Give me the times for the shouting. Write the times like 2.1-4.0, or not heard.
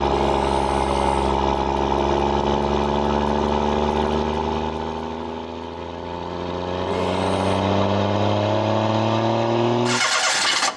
0.1-1.4, 6.8-7.3.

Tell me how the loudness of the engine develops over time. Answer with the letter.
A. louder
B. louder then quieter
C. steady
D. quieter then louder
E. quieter
D.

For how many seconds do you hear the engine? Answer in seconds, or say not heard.
11 s.